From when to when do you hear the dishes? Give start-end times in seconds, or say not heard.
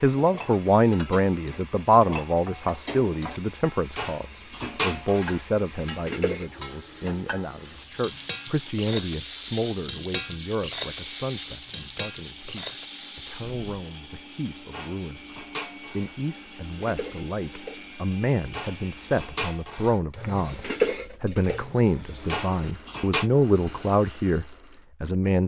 0.1-6.5, 14.7-23.3.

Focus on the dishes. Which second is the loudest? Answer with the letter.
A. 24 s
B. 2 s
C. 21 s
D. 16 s
C.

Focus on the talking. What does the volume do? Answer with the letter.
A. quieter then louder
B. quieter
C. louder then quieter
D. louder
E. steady
A.